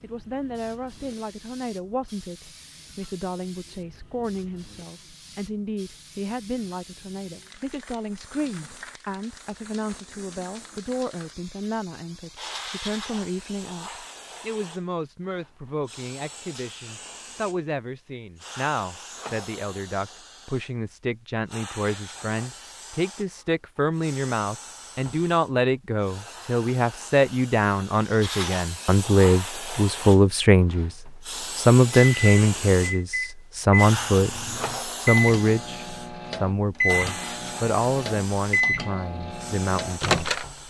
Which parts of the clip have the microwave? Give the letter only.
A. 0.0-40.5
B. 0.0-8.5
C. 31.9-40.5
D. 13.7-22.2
C.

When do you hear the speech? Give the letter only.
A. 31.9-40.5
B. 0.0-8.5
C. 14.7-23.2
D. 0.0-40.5
D.